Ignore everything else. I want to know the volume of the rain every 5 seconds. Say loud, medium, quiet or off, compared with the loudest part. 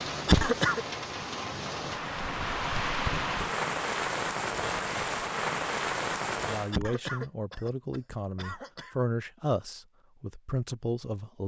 loud, loud, off.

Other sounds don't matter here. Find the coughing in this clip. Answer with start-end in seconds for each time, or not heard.
0.2-0.8, 6.7-8.9.